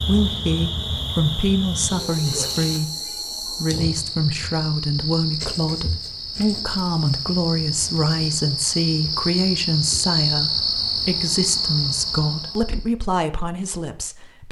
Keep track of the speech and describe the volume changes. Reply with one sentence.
The loudness of the speech stays about the same.